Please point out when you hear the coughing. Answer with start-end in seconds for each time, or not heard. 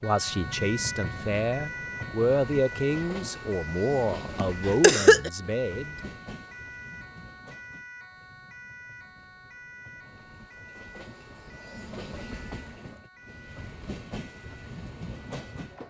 4.3-5.3.